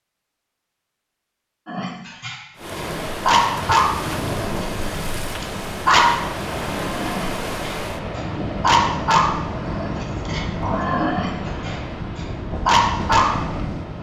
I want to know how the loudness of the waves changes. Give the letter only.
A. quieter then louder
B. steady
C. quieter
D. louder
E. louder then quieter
B.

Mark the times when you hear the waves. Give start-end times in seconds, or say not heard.
2.5-13.9.